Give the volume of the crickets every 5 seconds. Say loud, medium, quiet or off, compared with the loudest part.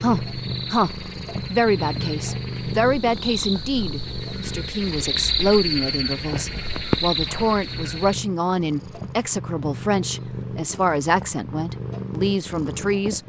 medium, loud, off.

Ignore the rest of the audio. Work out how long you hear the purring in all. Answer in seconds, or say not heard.
13 s.